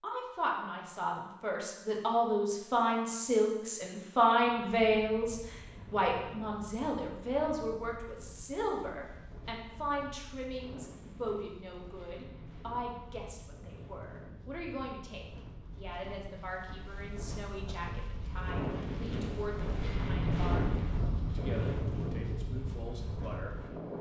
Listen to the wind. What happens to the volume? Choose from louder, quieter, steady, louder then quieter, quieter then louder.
louder.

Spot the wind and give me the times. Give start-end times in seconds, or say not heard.
4.3-23.9.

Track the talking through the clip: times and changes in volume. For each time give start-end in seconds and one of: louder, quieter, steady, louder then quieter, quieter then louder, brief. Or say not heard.
0.0-23.8 quieter.